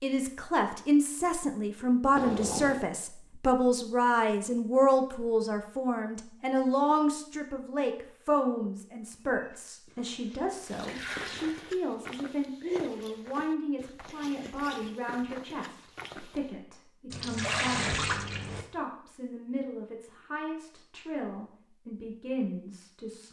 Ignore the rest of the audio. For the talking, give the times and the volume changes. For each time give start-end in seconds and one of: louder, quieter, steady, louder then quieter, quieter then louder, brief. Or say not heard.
0.0-23.2 quieter.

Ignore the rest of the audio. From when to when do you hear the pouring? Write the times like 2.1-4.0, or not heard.
2.1-2.8, 10.6-11.7, 17.1-18.6.